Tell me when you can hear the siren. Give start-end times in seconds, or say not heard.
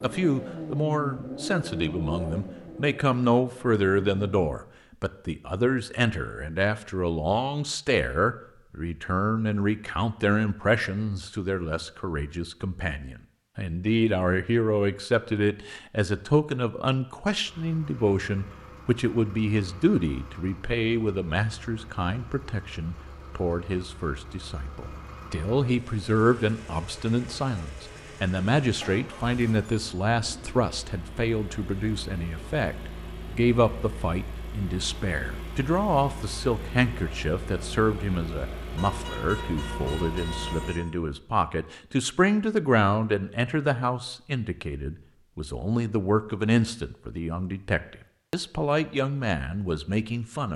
not heard.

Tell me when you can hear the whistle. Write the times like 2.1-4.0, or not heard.
not heard.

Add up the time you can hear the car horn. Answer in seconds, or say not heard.
2 s.